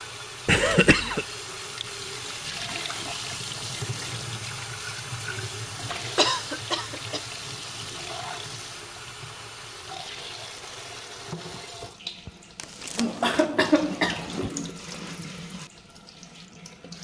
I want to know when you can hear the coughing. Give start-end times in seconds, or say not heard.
0.5-1.2, 6.2-7.2, 12.9-14.5.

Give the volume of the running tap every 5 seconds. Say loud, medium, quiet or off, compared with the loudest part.
loud, loud, loud, medium.